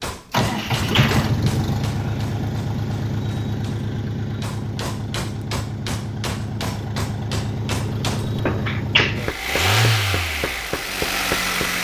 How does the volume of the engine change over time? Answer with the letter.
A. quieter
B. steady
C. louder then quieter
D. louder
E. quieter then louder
E.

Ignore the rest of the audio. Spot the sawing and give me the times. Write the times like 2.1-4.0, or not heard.
not heard.